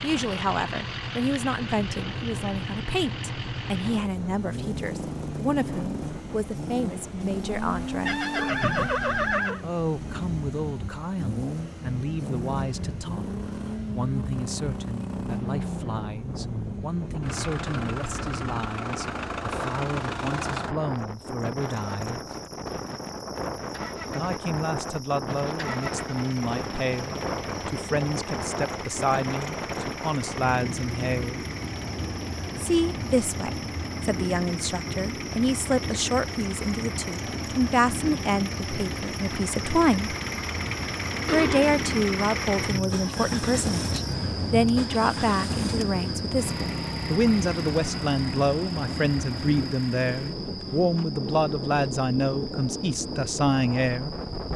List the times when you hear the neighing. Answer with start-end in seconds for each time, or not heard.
8.1-9.6, 41.2-41.9.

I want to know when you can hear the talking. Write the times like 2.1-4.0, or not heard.
0.0-8.2, 9.6-22.2, 24.1-31.4, 32.5-40.1, 41.2-54.1.